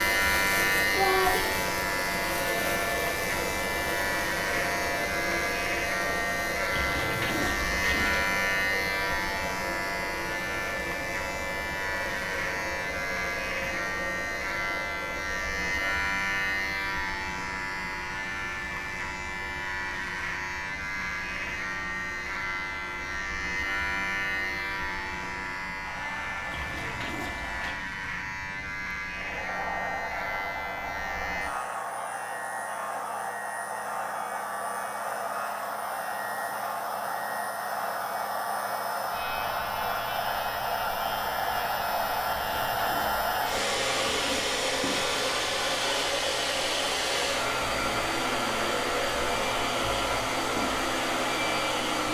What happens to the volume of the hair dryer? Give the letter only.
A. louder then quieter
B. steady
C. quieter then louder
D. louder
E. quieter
C.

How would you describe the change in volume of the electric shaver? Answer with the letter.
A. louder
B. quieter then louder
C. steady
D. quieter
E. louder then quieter
D.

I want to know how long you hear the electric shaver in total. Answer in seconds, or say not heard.
52 s.